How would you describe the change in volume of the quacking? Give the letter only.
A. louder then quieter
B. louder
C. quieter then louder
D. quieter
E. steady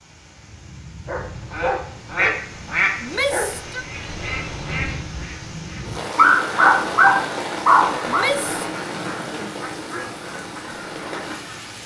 D.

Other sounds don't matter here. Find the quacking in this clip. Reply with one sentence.
You can hear the quacking from 1.2 to 11.8 s.